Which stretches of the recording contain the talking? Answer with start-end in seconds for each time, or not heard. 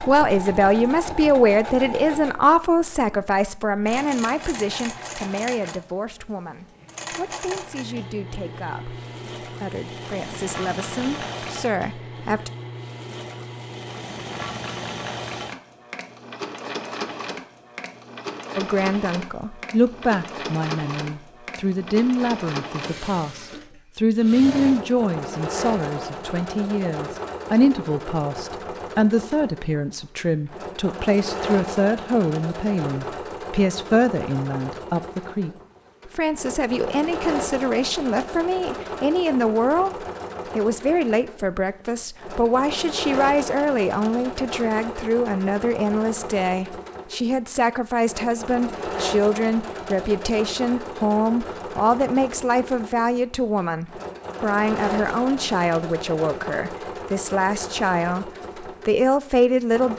0.1-12.5, 18.6-59.9.